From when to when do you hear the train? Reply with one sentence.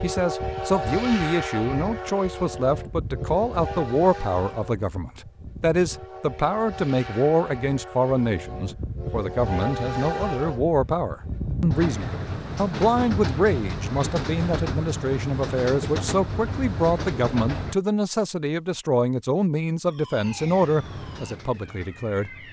The train can be heard from 0.0 to 17.8 s and from 20.2 to 22.4 s.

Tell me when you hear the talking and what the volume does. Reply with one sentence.
You can hear the talking from 0.0 to 22.3 s, at a steady volume.